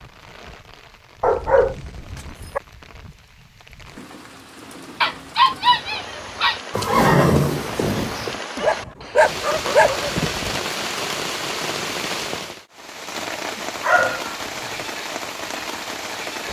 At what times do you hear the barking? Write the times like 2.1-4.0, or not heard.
1.2-2.6, 5.0-6.6, 8.6-10.6, 13.8-14.3.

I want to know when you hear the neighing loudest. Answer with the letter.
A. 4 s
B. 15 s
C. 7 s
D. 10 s
C.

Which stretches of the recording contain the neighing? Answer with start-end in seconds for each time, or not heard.
6.7-8.4.